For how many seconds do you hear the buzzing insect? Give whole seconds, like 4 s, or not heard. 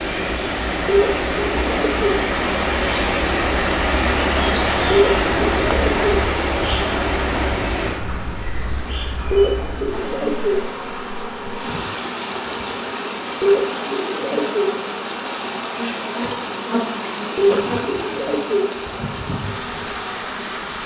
21 s.